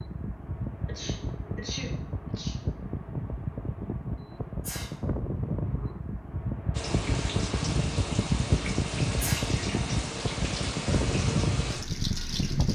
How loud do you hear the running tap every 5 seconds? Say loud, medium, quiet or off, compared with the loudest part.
off, loud, loud.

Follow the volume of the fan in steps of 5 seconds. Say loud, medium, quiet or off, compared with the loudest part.
medium, loud, loud.